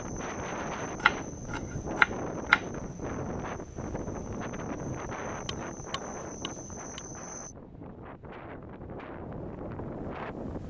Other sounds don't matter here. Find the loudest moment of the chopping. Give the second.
2 s.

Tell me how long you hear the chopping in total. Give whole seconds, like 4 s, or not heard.
3 s.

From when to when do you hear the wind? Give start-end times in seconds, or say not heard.
0.0-10.6.